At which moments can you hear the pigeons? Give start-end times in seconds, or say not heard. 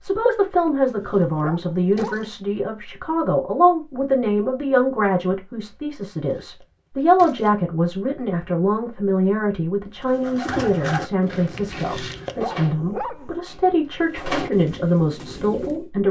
10.0-15.9.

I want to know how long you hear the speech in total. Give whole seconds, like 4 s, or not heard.
16 s.